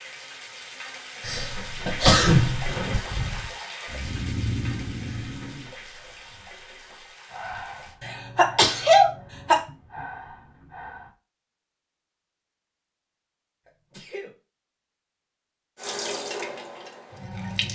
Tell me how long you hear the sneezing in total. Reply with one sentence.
The sneezing can be heard for 4 seconds in total.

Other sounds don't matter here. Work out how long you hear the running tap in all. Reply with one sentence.
You can hear the running tap for 10 seconds altogether.